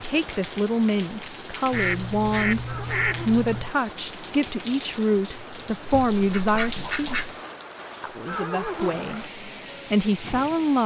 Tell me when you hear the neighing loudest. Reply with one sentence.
The volume of the neighing peaks at 9 seconds.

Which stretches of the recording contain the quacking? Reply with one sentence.
You can hear the quacking from 1.7 to 3.7 s and from 5.8 to 7.4 s.